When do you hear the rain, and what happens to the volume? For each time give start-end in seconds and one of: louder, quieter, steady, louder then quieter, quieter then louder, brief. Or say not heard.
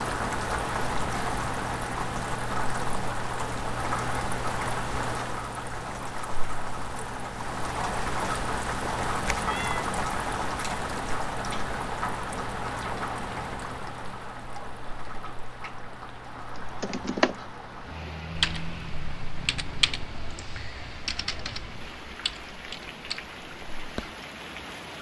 0.0-24.9 quieter.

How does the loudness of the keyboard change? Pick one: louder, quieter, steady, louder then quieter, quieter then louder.
quieter.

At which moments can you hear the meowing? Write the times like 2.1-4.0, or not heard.
9.2-9.8.